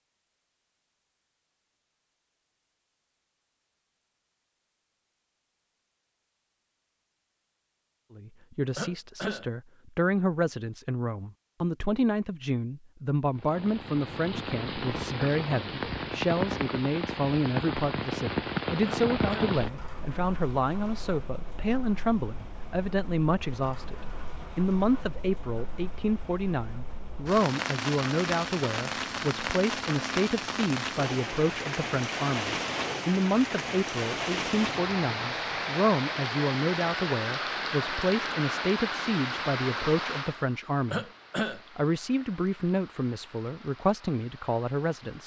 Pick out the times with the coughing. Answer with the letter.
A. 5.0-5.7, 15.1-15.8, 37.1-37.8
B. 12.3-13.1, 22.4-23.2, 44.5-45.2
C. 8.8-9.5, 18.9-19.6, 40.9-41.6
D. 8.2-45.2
C.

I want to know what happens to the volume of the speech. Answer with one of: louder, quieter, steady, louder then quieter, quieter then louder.
steady.